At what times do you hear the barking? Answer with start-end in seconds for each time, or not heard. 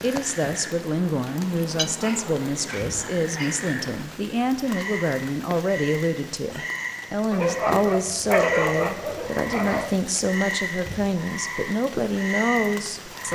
1.8-3.6, 7.3-10.0.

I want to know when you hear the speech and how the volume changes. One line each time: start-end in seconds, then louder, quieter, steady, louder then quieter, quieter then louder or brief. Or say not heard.
0.0-13.2 steady.